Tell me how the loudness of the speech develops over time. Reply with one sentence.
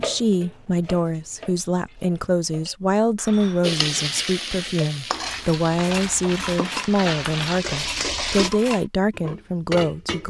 The loudness of the speech stays about the same.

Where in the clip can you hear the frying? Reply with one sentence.
You can hear the frying from 3.6 to 8.5 s.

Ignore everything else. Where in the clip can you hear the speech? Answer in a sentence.
The speech can be heard from 0.0 to 10.2 s.